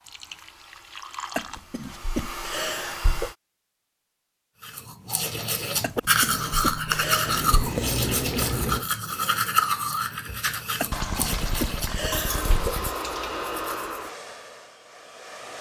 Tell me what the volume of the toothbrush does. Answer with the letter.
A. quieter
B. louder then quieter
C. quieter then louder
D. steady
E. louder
A.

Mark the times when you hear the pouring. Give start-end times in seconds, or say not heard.
0.1-1.6, 7.2-8.8, 10.9-12.9.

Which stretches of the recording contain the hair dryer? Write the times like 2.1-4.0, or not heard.
0.0-3.4, 12.2-15.5.